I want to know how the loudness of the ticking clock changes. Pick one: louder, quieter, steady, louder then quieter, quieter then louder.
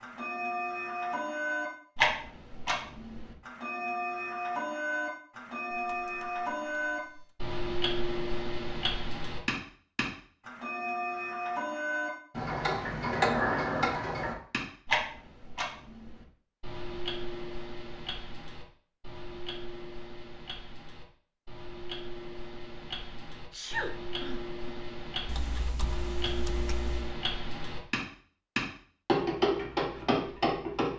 quieter then louder.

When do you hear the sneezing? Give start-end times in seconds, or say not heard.
23.5-24.6.